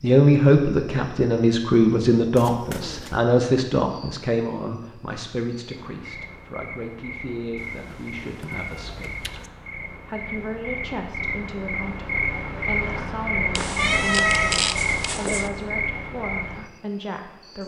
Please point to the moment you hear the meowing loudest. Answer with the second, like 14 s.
14 s.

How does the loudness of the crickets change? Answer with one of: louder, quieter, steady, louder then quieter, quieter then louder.
louder.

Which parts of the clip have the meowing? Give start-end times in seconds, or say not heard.
2.3-3.2, 7.5-9.5, 13.6-15.5.